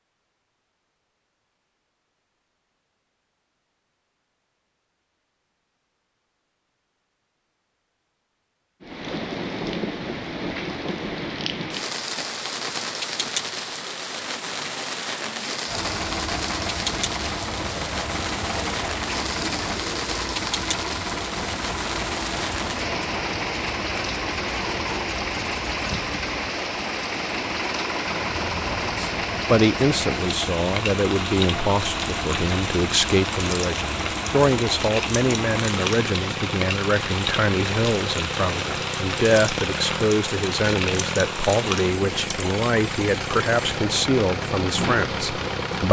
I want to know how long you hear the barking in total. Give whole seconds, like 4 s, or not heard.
not heard.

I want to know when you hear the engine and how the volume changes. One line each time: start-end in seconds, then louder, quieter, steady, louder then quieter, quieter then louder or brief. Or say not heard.
15.7-45.8 steady.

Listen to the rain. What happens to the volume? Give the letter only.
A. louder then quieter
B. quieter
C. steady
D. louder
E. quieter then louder
C.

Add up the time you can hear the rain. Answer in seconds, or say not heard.
37 s.